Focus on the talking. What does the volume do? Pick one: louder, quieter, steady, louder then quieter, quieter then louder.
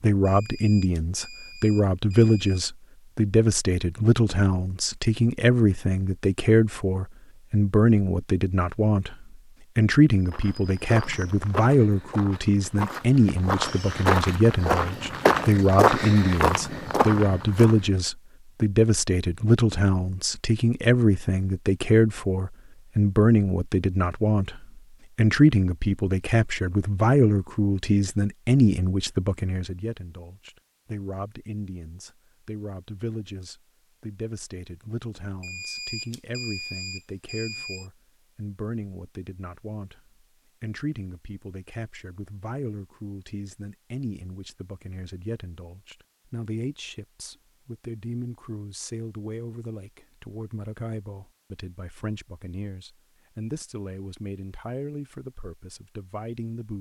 quieter.